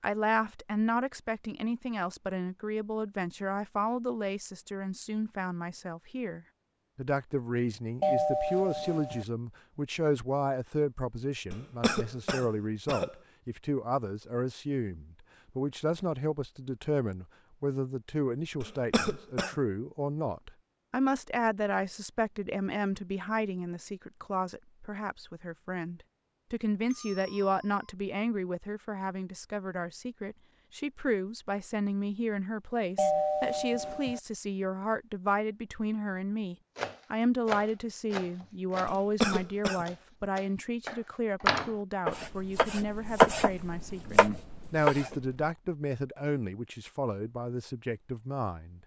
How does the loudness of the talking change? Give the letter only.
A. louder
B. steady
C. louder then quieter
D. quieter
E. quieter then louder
B.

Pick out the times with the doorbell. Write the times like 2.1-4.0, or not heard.
8.0-9.2, 26.9-27.9, 33.0-34.2.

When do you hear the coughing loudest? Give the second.
39 s.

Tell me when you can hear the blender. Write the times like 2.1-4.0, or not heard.
not heard.